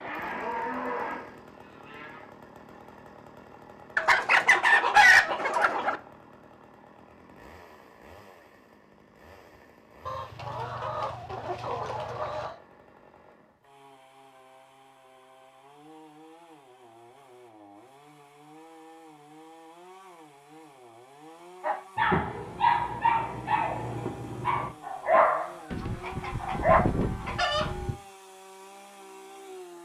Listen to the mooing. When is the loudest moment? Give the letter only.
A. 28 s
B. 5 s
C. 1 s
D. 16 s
C.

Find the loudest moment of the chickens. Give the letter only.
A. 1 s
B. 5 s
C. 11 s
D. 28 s
B.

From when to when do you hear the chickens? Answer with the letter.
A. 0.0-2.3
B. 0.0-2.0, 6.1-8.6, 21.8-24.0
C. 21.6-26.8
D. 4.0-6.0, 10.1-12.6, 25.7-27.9
D.